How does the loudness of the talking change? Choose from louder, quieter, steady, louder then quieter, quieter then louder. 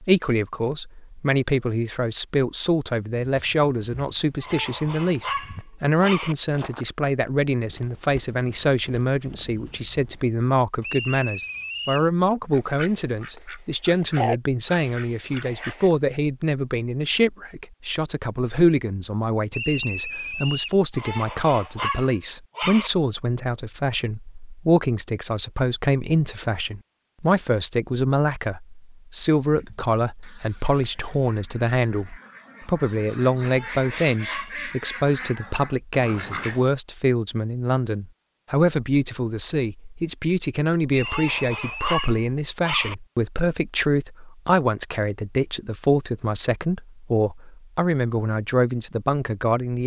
steady.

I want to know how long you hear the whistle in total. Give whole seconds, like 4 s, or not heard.
4 s.